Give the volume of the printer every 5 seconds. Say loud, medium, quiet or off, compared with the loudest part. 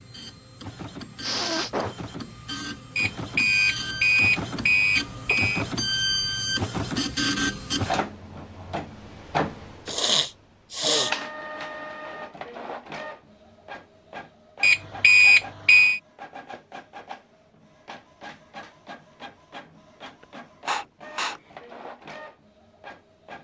medium, loud, medium, quiet, quiet.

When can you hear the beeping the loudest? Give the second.
15 s.